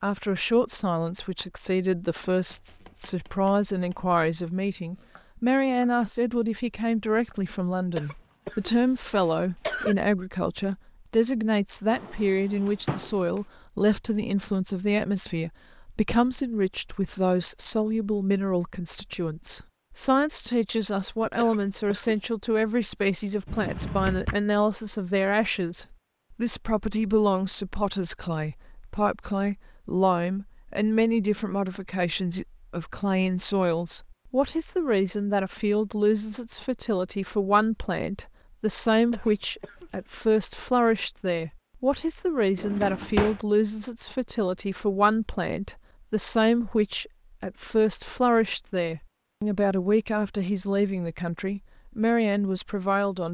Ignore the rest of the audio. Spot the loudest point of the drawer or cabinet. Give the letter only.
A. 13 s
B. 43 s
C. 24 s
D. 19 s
B.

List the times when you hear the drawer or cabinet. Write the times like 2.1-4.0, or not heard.
11.9-13.4, 23.4-24.4, 42.5-43.4.